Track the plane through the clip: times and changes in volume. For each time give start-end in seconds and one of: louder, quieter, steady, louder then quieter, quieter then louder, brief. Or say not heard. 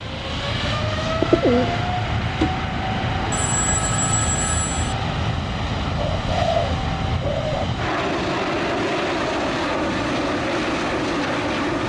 0.0-11.8 steady.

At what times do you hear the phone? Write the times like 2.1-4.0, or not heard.
3.3-5.0.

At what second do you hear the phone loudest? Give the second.
4 s.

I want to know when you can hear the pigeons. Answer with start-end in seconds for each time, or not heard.
1.2-2.5, 6.0-7.7.